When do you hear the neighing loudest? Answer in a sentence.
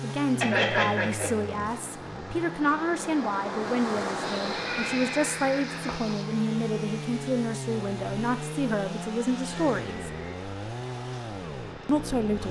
The loudest moment of the neighing is at 1 second.